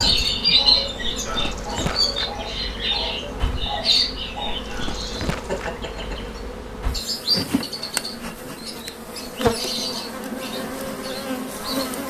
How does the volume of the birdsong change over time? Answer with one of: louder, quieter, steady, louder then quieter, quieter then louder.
quieter.